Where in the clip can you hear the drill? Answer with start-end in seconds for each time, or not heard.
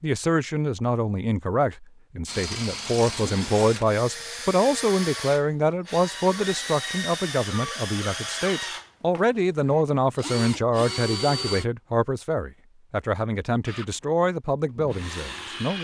2.2-11.7, 13.7-15.7.